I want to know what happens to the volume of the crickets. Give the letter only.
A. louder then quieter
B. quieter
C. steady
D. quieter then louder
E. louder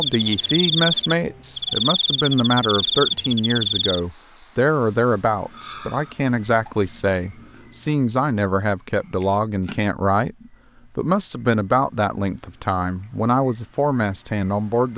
D.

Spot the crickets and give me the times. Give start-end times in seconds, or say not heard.
0.0-14.9.